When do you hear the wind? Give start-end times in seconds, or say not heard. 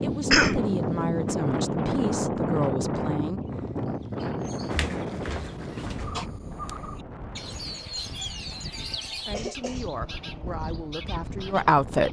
0.0-12.0.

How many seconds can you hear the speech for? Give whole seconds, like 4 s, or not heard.
6 s.